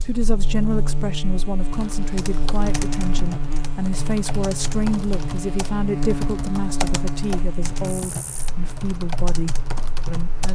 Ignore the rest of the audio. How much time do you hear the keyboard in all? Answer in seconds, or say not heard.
9 s.